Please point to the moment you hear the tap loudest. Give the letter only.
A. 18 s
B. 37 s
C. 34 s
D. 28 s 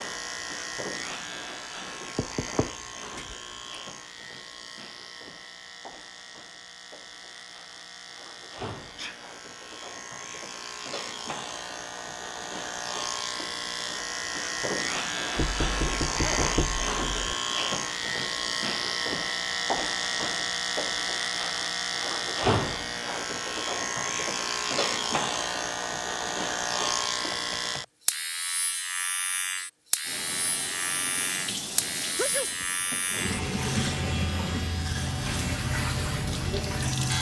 C.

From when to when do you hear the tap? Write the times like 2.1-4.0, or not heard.
30.0-37.1.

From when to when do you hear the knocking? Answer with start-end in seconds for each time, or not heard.
2.1-3.8, 15.3-17.4, 27.3-27.9.